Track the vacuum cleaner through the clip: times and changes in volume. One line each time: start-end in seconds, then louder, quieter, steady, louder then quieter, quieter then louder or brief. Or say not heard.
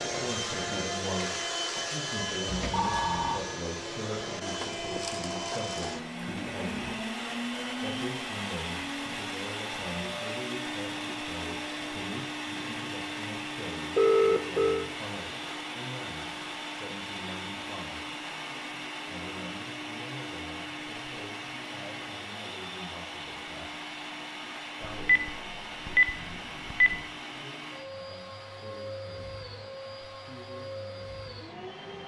0.0-32.0 quieter.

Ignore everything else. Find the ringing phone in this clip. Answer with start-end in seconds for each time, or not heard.
2.5-3.4, 13.9-14.8, 25.1-27.0.